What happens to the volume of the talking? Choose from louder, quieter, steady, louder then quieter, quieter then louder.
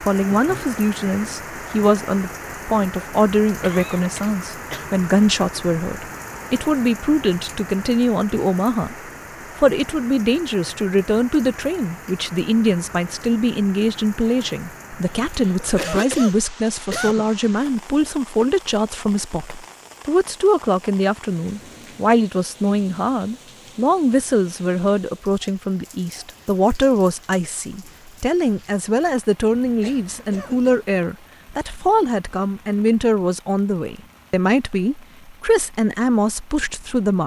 steady.